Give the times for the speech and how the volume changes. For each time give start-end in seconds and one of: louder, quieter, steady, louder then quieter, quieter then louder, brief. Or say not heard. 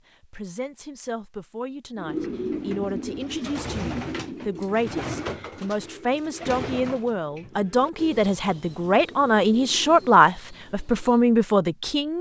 0.2-12.1 louder.